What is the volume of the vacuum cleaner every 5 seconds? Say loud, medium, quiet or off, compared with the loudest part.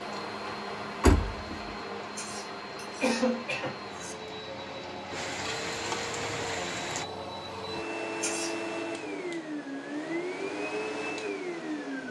medium, loud, loud.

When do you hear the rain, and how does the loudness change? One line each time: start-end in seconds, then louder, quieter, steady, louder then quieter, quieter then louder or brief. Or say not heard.
0.0-7.0 louder.